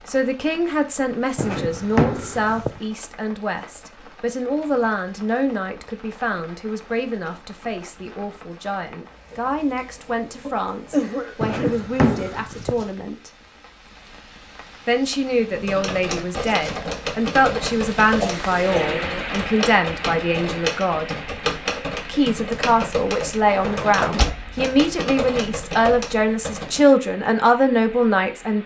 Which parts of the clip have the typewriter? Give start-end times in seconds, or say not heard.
15.5-26.9.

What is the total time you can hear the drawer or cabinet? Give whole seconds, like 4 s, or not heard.
4 s.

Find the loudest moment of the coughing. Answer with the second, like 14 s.
11 s.